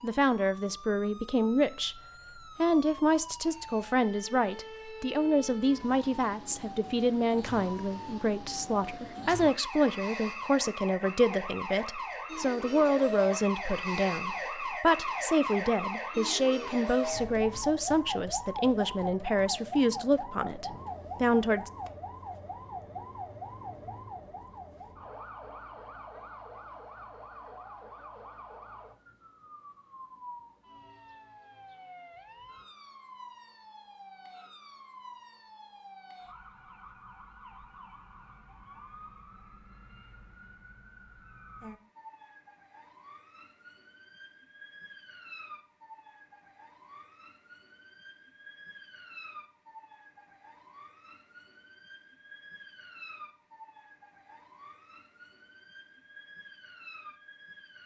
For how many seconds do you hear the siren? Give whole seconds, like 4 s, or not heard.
58 s.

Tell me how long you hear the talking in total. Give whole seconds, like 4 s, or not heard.
21 s.